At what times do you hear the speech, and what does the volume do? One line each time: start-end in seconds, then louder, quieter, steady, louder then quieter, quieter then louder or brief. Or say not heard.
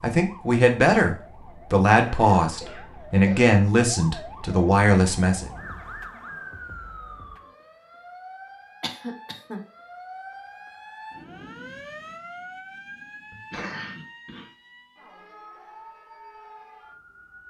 0.0-5.5 steady.